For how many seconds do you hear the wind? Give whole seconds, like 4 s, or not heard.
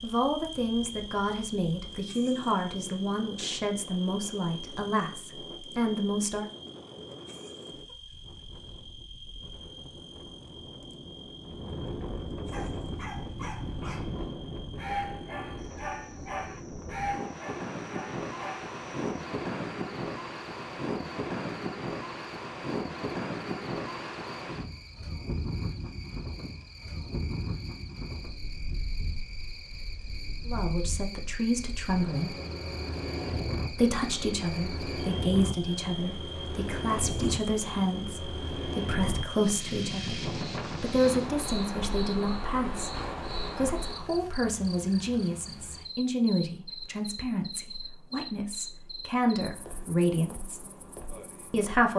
44 s.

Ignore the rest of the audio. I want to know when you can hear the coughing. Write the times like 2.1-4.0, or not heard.
not heard.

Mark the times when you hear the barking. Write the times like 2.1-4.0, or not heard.
12.5-18.8.